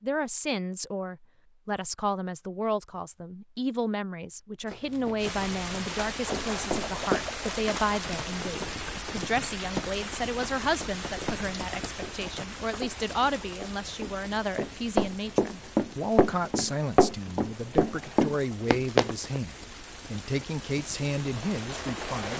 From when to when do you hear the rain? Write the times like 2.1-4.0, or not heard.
5.2-22.3.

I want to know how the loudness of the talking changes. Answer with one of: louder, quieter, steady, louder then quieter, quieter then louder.
steady.